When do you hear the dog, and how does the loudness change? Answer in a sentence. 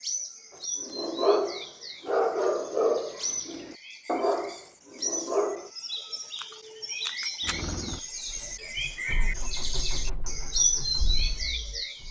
The dog can be heard from 0.8 to 5.7 s, getting quieter.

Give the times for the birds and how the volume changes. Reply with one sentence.
You can hear the birds from 0.0 to 12.0 s, getting louder.